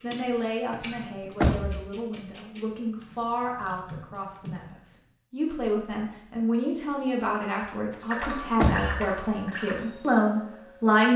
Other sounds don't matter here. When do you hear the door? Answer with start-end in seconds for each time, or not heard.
0.8-1.9, 8.0-9.1.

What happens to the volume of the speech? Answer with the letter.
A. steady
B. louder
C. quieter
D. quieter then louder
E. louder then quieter
B.